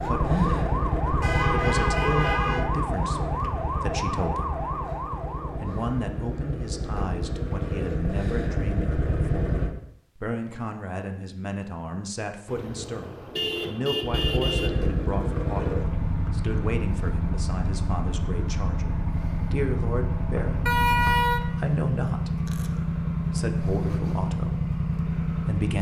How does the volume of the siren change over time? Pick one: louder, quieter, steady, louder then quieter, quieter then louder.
steady.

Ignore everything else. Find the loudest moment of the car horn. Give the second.
21 s.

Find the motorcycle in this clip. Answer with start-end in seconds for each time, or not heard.
0.0-9.8, 14.0-25.7.